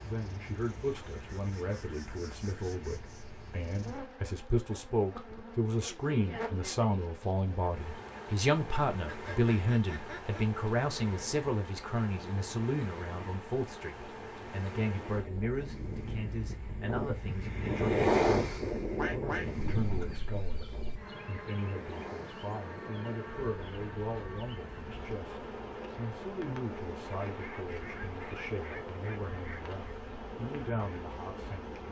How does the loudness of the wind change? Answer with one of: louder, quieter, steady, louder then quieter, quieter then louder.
quieter.